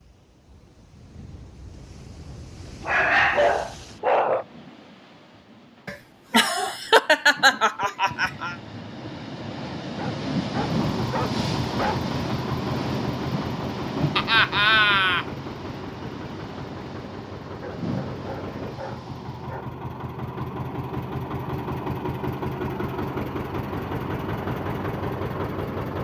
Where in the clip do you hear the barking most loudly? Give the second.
3 s.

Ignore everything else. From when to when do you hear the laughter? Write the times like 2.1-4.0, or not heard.
5.8-8.6, 14.2-15.2.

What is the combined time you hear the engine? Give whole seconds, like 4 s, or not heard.
15 s.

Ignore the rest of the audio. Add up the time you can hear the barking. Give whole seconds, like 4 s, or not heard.
6 s.